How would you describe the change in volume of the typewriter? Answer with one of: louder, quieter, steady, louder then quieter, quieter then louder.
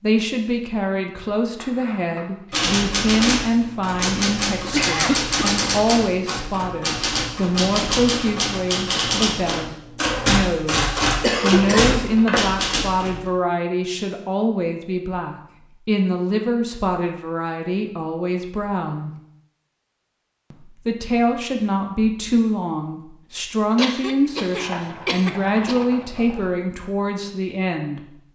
steady.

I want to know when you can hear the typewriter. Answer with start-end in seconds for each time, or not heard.
2.5-13.2.